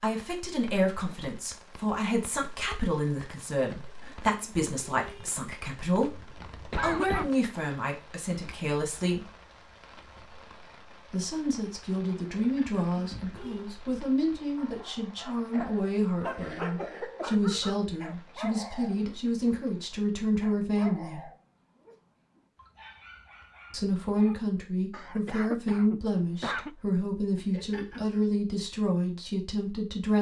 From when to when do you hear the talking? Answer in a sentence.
You can hear the talking from 0.0 to 6.1 s, from 6.8 to 9.2 s, from 11.1 to 21.3 s and from 23.7 to 30.1 s.